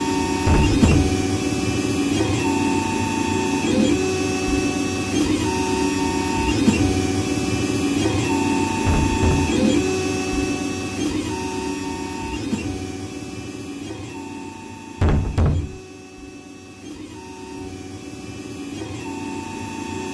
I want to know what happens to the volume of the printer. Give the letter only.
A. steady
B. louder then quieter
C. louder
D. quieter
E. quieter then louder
D.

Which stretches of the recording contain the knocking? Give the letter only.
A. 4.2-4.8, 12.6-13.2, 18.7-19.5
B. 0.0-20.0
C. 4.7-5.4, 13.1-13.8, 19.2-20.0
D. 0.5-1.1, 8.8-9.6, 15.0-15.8
D.